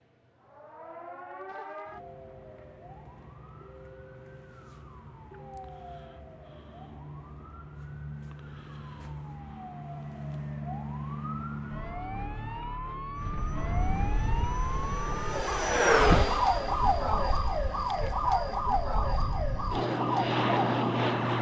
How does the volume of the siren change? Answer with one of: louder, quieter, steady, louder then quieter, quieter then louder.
louder.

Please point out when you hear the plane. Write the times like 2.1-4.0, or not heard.
13.2-21.3.